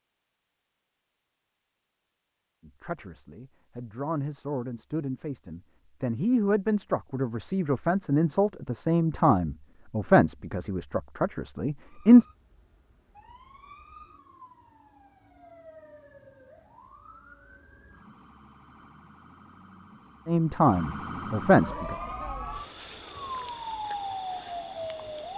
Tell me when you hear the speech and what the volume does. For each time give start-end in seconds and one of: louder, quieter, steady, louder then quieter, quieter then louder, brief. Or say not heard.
2.6-12.2 louder
20.2-21.9 brief.